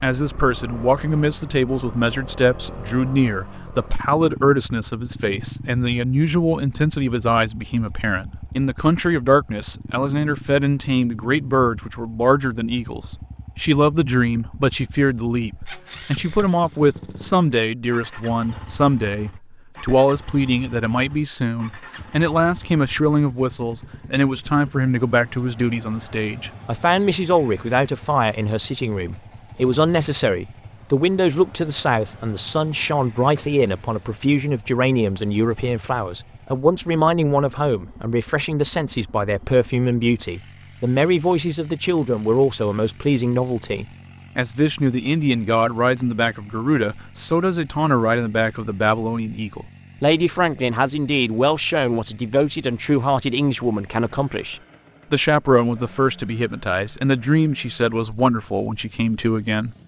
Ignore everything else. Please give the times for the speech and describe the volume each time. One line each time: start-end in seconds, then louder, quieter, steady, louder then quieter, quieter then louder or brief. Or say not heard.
0.0-59.8 steady.